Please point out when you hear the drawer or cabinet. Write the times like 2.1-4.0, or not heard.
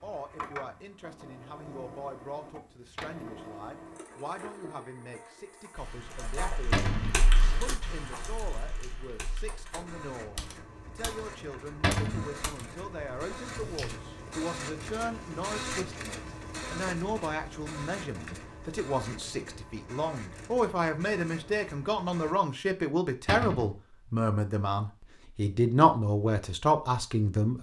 6.7-7.2, 11.8-12.3, 23.2-23.8.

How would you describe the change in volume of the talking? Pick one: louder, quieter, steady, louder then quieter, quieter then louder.
louder.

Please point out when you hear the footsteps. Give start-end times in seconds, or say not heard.
not heard.